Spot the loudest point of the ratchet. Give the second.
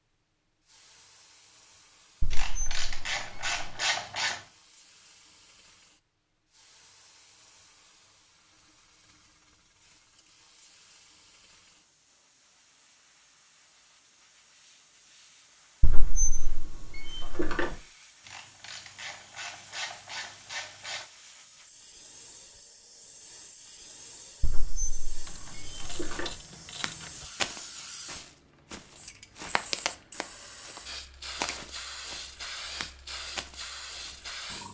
4 s.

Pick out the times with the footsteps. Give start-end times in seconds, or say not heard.
26.1-34.2.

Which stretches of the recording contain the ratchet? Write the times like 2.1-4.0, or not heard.
2.3-4.5, 18.2-21.1, 25.2-27.2.